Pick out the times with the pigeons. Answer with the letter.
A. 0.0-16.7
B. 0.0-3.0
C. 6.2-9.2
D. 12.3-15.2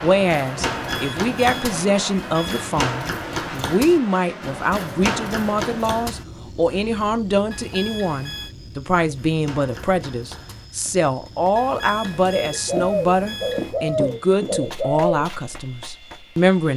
D.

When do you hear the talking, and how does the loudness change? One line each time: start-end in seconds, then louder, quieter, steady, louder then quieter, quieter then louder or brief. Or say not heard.
0.0-16.7 steady.